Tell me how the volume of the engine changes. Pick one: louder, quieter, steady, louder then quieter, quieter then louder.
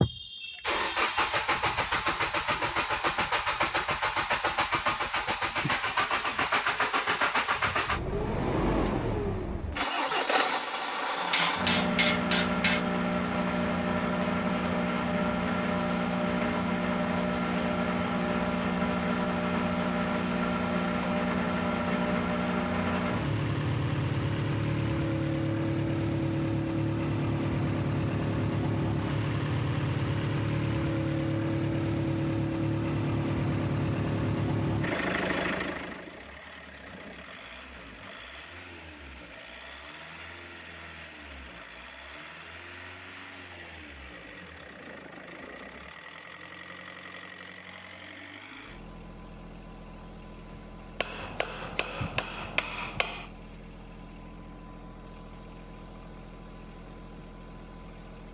quieter.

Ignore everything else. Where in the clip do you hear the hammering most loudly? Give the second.
12 s.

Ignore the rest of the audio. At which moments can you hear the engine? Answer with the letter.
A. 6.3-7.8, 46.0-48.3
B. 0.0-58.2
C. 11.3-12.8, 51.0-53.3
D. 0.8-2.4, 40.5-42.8
B.